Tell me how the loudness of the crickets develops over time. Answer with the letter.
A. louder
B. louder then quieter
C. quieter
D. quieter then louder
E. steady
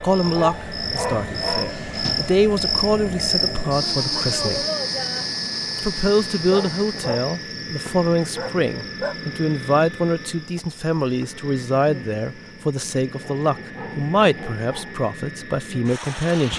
C.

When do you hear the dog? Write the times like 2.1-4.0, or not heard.
0.2-2.3, 6.3-7.3, 8.3-9.2, 13.4-15.0.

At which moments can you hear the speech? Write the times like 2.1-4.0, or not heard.
0.0-4.7, 5.8-16.5.